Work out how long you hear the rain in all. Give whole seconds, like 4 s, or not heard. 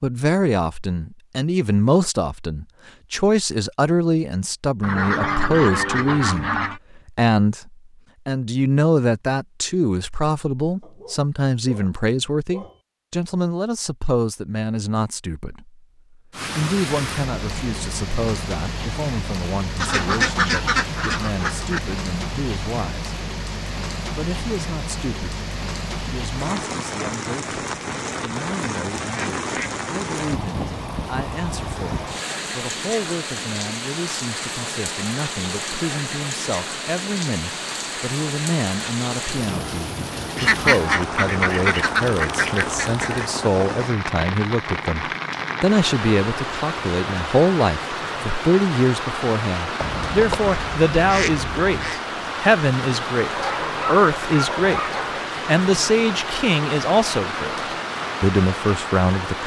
43 s.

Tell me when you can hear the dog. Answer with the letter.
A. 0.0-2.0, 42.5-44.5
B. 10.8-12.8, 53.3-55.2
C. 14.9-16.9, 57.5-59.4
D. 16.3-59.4
B.